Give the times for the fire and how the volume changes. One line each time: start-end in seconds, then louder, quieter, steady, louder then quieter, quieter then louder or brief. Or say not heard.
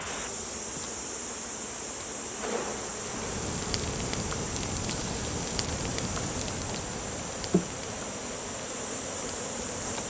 3.0-10.0 quieter.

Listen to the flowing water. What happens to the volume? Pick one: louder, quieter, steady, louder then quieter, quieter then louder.
steady.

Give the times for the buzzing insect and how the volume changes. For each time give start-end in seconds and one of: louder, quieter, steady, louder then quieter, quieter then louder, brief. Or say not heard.
0.0-10.0 steady.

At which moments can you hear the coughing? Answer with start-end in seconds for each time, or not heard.
not heard.